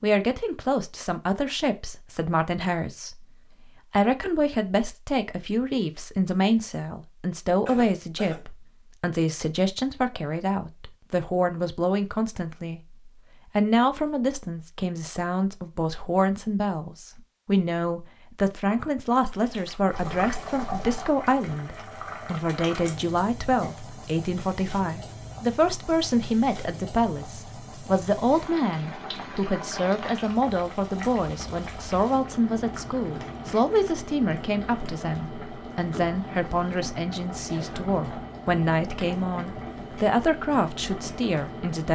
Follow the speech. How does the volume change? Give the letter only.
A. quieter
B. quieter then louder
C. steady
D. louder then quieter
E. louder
C.